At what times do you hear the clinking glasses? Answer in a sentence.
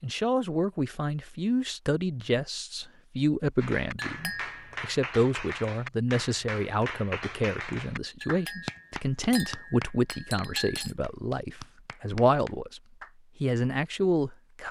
You can hear the clinking glasses from 4.0 to 4.8 s and from 8.2 to 10.9 s.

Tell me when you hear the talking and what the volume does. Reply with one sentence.
The talking can be heard from 0.0 to 12.8 s, at a steady volume; and briefly from 13.4 to 14.6 s.